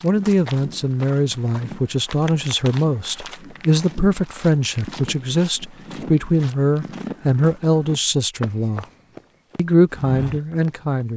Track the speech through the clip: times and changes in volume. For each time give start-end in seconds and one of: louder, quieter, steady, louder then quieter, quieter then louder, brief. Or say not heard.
0.0-8.8 steady
9.6-11.1 brief.